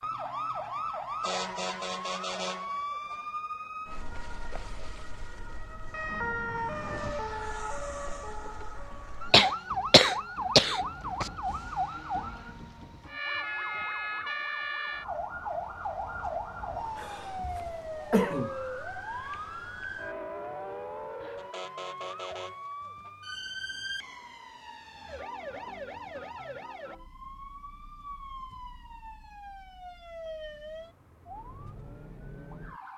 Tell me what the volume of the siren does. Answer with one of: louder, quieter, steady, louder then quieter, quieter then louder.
quieter.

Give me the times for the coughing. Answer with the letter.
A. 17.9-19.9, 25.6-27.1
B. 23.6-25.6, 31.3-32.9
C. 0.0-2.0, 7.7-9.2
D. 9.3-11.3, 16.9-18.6
D.